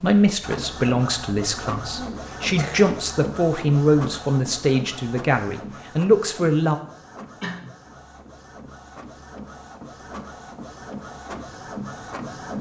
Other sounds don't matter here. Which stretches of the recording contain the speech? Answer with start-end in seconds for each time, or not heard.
0.0-6.8.